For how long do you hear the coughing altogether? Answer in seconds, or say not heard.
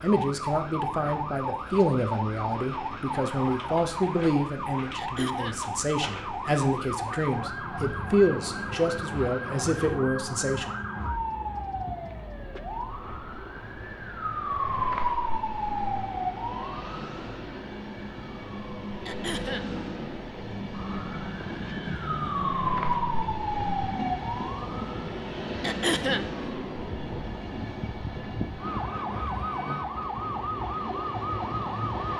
2 s.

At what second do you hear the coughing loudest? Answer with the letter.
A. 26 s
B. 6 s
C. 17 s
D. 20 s
A.